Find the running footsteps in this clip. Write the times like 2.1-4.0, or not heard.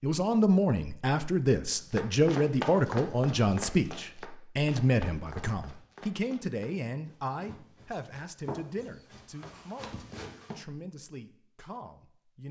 1.9-10.6.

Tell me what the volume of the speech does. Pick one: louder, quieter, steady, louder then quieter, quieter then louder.
quieter.